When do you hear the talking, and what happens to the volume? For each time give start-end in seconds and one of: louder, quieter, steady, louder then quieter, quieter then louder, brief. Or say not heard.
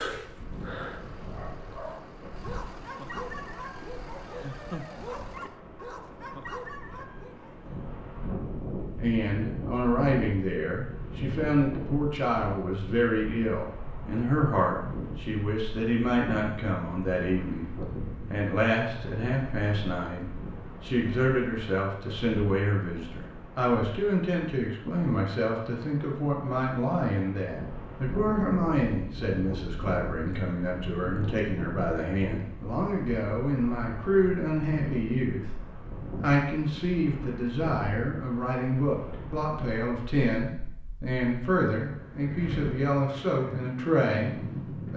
8.9-44.9 steady.